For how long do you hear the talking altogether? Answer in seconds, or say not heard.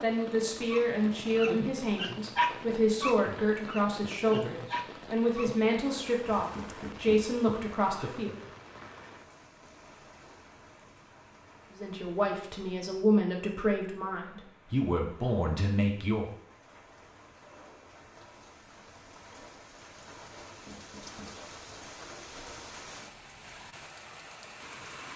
13 s.